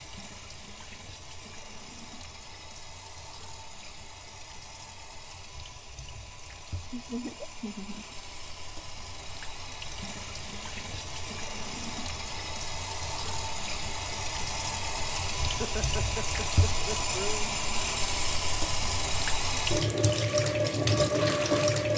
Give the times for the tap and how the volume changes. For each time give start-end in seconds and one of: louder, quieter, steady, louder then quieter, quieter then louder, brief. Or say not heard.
0.0-21.9 louder.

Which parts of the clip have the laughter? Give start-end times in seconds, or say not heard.
6.9-8.1, 15.4-17.5.